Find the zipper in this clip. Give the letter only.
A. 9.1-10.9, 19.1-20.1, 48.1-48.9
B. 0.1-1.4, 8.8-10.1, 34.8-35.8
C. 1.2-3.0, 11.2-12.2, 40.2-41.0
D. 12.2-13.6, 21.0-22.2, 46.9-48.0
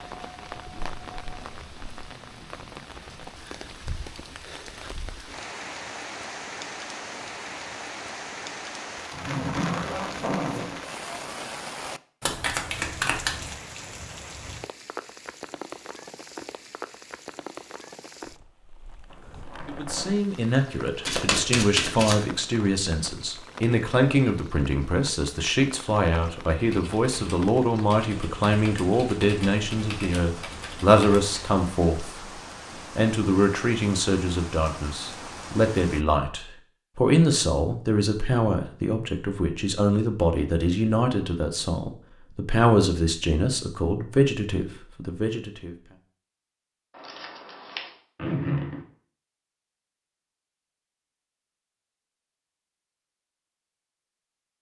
A.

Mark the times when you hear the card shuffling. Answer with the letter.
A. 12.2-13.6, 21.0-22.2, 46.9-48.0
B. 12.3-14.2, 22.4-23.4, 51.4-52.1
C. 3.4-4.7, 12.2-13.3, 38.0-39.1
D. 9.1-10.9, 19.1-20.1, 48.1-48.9
A.